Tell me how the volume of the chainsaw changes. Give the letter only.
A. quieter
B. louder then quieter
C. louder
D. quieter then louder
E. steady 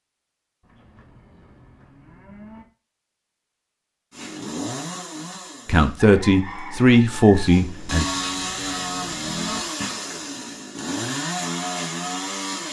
D.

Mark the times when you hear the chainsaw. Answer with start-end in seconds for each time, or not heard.
4.1-12.6.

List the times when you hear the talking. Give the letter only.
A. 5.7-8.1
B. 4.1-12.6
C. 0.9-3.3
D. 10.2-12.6
A.